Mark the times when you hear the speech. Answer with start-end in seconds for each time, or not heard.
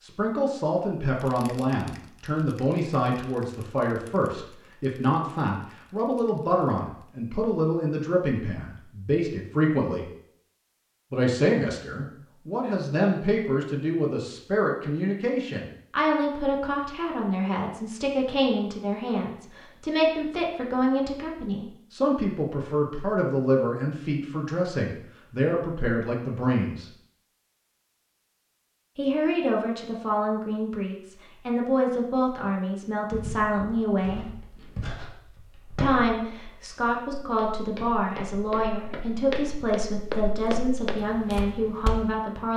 0.0-10.1, 11.1-26.9, 28.9-34.3, 35.8-42.5.